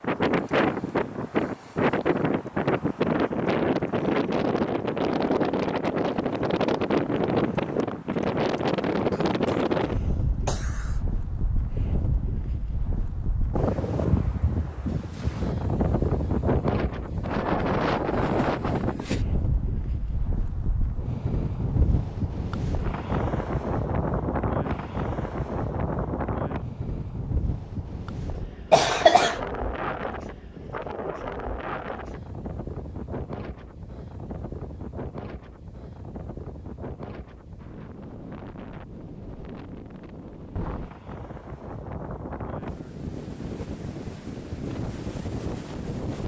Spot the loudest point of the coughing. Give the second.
29 s.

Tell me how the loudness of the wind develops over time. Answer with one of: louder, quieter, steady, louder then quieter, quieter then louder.
quieter.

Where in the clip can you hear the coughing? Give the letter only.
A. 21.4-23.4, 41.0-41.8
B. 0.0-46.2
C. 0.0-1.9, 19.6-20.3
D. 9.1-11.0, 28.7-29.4
D.